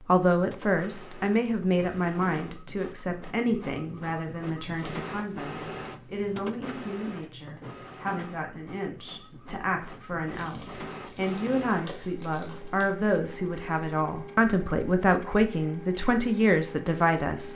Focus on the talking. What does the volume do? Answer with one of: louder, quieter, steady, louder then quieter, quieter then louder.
quieter then louder.